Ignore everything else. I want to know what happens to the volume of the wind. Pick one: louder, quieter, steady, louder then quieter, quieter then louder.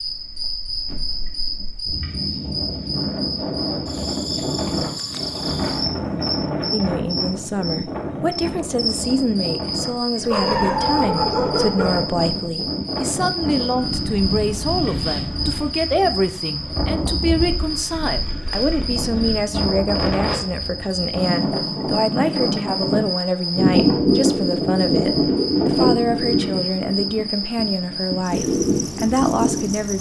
louder.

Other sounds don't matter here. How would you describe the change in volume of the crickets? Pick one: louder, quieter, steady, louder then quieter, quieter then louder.
steady.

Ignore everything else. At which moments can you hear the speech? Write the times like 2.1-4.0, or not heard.
6.7-29.9.